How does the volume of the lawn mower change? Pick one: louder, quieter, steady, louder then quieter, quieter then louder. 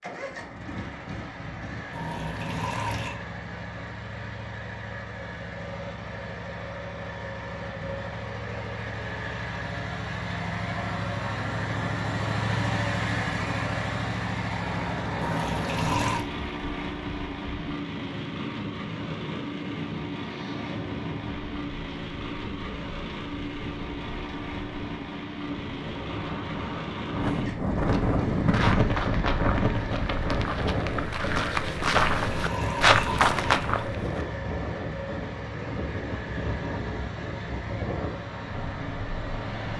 louder then quieter.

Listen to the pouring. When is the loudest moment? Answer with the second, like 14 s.
16 s.